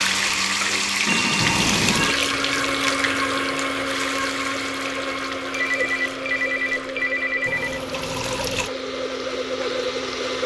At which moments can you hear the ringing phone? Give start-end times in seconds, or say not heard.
1.1-2.1, 5.5-7.8.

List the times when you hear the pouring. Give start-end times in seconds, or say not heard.
1.4-2.1, 7.5-8.7.